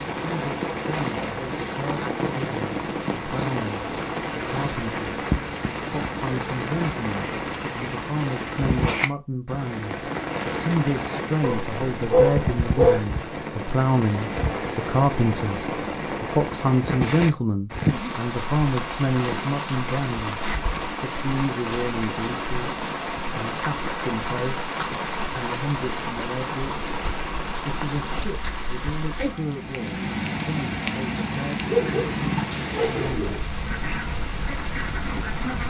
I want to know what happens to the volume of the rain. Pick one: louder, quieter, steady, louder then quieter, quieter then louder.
steady.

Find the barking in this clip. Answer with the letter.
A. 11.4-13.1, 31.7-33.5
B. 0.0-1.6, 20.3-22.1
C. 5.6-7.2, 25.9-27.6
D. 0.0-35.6
A.